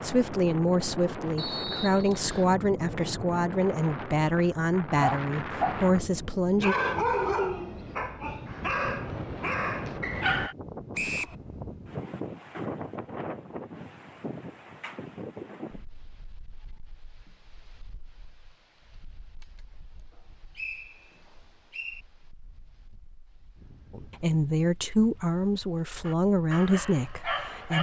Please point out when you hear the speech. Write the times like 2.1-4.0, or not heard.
0.0-6.8, 23.9-27.7.